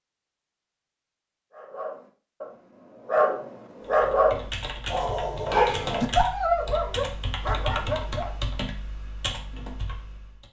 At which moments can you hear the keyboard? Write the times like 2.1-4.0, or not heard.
3.9-10.4.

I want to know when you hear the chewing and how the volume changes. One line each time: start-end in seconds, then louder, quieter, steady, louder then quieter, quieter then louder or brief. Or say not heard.
not heard.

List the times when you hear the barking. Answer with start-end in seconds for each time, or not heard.
1.5-8.3.